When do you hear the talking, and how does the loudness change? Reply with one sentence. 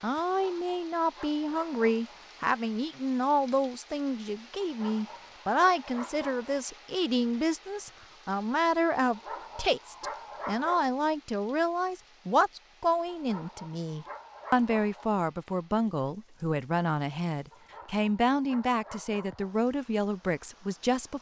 You can hear the talking from 0.0 to 21.1 s, at a steady volume.